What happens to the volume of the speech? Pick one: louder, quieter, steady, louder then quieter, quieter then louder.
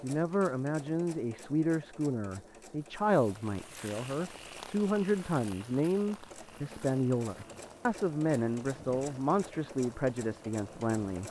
steady.